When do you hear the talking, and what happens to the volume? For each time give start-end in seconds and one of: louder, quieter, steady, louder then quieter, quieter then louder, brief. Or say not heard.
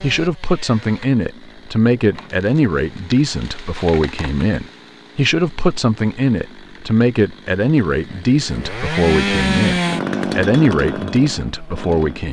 0.0-12.2 steady.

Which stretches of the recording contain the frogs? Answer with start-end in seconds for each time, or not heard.
not heard.